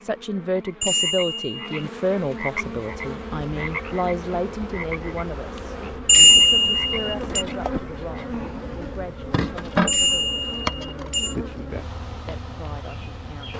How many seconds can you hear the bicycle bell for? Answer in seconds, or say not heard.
4 s.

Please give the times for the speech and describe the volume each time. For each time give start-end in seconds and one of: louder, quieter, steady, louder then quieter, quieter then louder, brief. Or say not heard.
0.0-13.5 quieter.